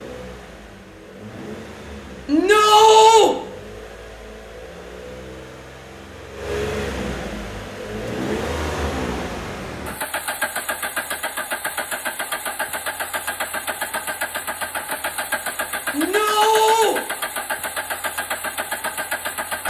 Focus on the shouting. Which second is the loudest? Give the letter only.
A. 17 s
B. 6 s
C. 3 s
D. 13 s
C.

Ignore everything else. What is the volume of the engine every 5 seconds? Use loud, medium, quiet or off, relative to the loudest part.
medium, loud, loud, loud.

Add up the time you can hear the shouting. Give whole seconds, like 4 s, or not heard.
2 s.